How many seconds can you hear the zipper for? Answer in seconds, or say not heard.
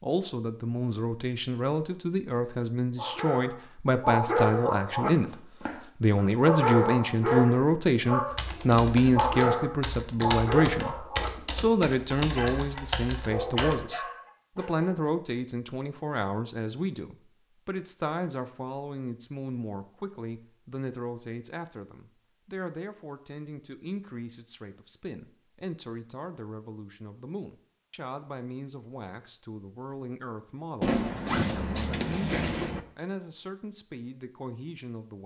2 s.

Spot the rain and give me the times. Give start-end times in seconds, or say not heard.
not heard.